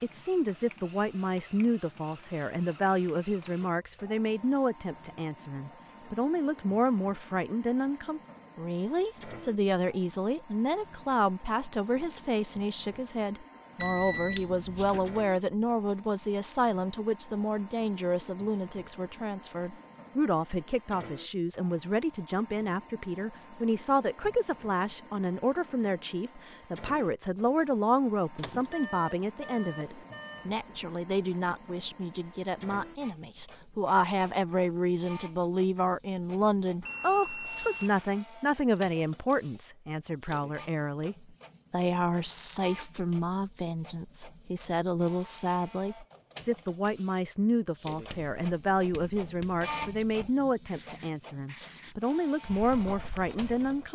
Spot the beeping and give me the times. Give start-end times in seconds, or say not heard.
13.8-15.2, 28.4-30.5, 36.8-38.0.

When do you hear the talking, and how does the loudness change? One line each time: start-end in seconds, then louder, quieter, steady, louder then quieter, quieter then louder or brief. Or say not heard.
0.0-53.9 steady.